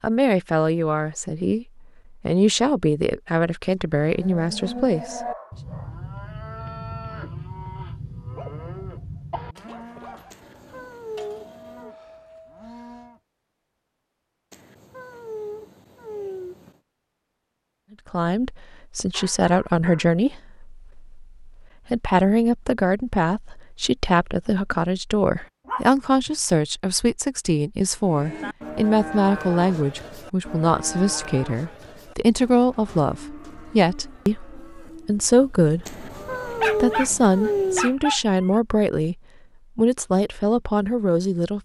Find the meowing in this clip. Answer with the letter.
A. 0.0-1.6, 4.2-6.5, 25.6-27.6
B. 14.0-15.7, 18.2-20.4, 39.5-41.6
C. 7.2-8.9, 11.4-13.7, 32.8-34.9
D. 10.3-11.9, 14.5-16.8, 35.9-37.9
D.